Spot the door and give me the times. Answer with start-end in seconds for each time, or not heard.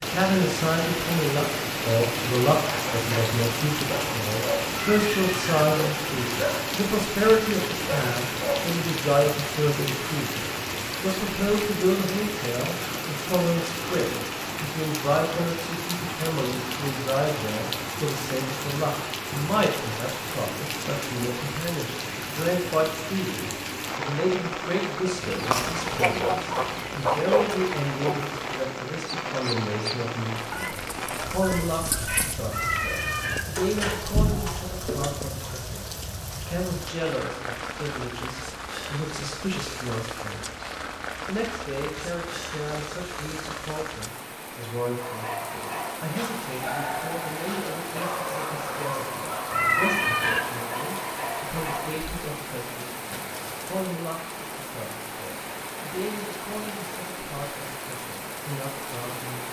33.5-35.1.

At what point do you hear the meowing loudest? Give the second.
50 s.